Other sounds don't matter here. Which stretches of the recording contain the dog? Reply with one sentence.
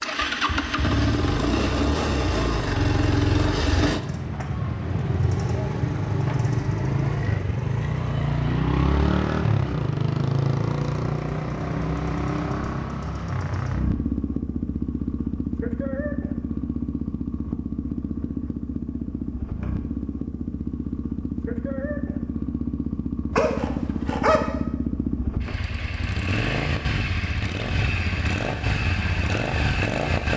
You can hear the dog from 23.3 to 24.5 s.